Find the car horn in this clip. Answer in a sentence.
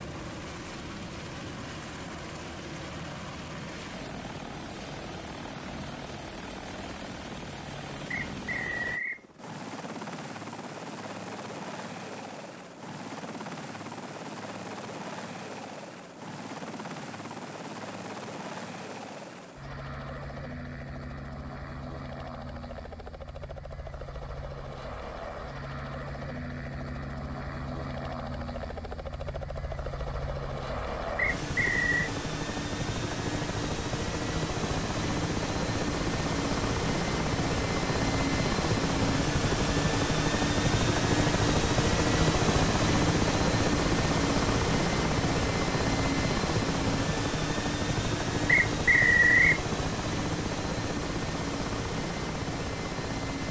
You can't hear the car horn here.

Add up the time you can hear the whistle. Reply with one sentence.
The whistle can be heard for 3 seconds in total.